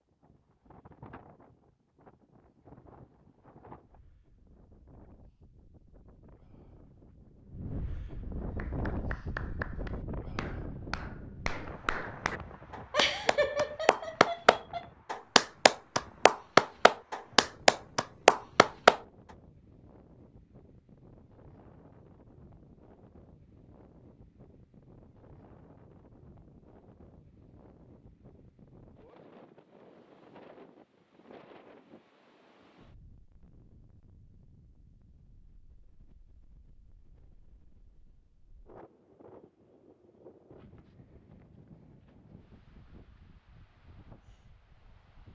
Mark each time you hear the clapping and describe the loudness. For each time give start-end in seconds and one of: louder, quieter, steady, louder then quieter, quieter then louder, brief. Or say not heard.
8.6-19.0 louder.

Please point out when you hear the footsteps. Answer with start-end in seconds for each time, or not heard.
not heard.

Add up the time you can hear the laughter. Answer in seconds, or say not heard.
2 s.